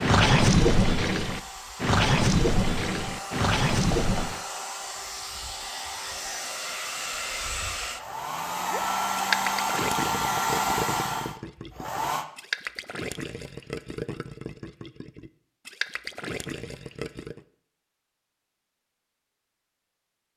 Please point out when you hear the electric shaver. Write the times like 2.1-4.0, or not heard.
not heard.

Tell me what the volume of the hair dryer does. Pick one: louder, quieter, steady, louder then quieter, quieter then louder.
louder.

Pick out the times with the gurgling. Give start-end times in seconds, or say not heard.
0.0-4.4, 8.7-17.4.